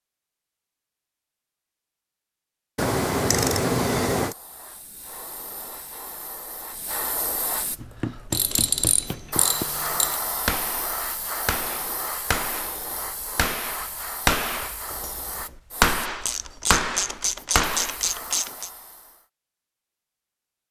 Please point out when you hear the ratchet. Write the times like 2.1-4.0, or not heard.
2.8-4.3, 8.3-10.2, 16.1-18.7.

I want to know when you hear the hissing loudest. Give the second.
10 s.